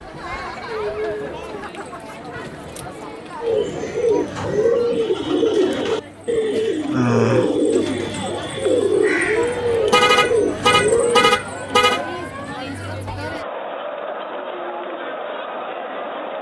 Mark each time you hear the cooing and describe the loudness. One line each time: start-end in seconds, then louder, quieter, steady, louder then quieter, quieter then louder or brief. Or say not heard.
3.4-11.3 steady.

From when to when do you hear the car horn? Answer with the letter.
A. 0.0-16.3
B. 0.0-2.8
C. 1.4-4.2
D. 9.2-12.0
D.